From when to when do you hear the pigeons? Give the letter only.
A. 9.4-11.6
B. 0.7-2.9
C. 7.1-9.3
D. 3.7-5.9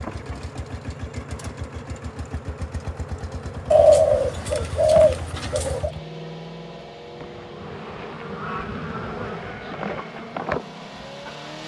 D.